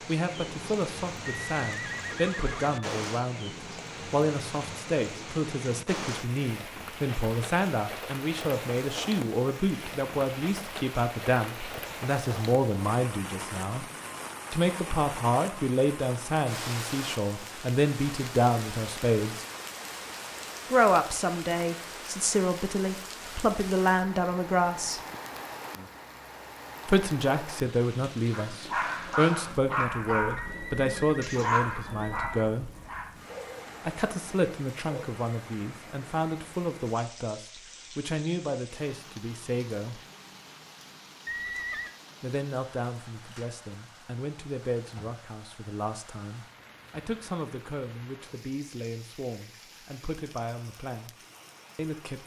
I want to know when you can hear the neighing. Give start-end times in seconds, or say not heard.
1.3-2.9, 30.4-32.5, 41.2-42.0.